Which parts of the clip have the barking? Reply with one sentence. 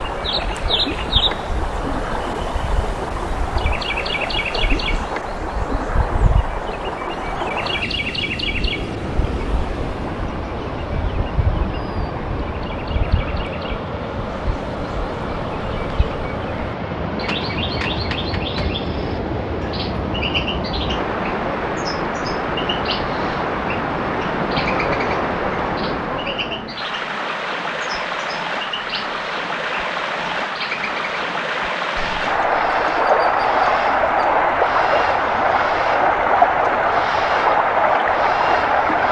You can't hear the barking here.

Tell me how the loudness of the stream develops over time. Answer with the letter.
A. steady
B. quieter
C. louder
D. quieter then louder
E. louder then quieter
C.